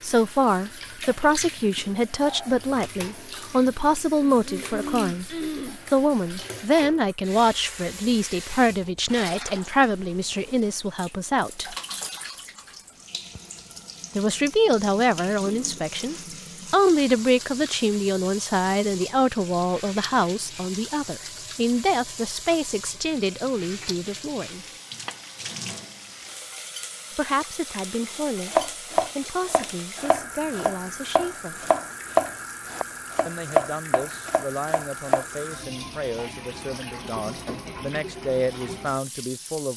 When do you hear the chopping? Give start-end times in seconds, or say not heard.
28.5-35.2.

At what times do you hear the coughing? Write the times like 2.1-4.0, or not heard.
4.2-5.8.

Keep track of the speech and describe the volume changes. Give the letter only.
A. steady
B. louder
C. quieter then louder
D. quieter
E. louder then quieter
D.